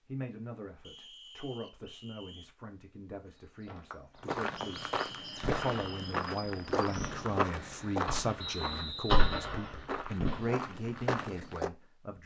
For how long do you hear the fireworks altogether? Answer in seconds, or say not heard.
5 s.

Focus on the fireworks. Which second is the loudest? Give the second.
9 s.